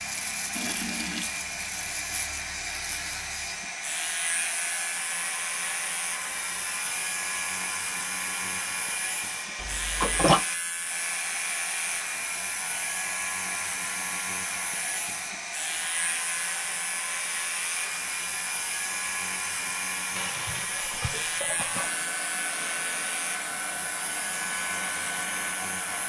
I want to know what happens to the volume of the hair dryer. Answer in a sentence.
The volume of the hair dryer stays about the same.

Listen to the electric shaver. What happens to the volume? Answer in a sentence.
The loudness of the electric shaver stays about the same.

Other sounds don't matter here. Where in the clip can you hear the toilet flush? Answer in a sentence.
The toilet flush can be heard from 0.6 to 1.3 s, from 9.6 to 10.4 s and from 20.1 to 22.0 s.